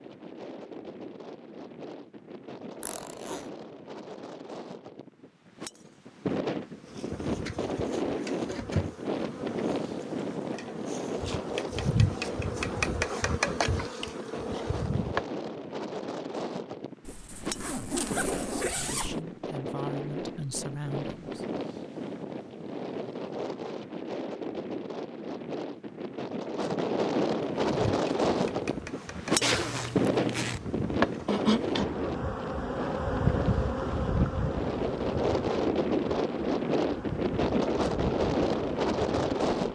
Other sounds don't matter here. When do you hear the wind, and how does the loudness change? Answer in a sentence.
You can hear the wind from 0.0 to 39.7 s, getting louder.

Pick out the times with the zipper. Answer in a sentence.
You can hear the zipper from 2.8 to 3.5 s, from 17.1 to 19.2 s and from 29.4 to 30.6 s.